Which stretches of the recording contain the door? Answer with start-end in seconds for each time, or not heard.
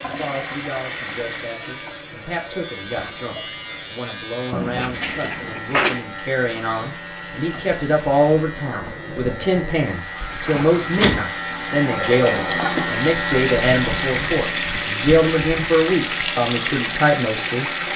4.5-6.0, 10.2-11.2.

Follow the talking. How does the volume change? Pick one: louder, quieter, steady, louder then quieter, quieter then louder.
louder.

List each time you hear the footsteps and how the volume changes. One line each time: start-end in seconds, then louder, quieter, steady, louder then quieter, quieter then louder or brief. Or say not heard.
not heard.